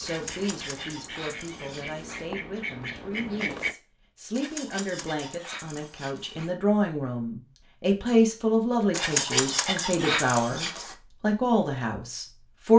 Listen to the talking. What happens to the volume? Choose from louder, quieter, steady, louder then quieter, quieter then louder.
louder.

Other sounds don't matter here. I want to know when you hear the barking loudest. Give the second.
9 s.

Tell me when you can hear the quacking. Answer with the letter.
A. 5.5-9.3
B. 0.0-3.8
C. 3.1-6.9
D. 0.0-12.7
B.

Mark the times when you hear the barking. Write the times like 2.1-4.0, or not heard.
0.1-2.2, 4.3-6.5, 8.9-10.9.